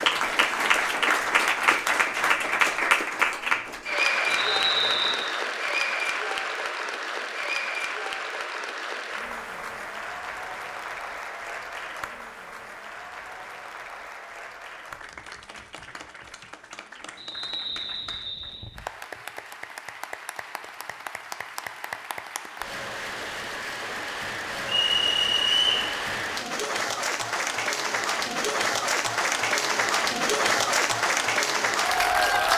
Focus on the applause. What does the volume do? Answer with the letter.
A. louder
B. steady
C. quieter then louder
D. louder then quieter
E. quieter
C.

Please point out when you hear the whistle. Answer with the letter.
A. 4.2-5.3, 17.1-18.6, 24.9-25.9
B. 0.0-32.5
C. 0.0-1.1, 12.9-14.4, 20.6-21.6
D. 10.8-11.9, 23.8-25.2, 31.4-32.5
A.